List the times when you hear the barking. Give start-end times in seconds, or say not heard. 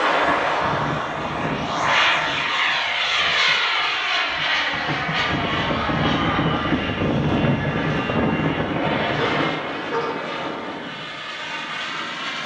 9.2-10.3.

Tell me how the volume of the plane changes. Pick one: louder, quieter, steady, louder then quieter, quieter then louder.
quieter.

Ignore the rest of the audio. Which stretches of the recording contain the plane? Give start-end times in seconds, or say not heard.
0.0-12.4.